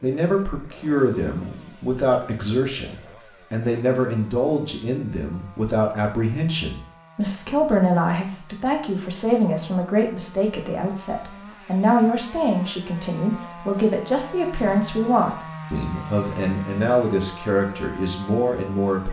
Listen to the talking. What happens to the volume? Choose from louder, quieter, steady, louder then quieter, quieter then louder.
steady.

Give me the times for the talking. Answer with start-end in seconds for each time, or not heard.
0.0-19.0.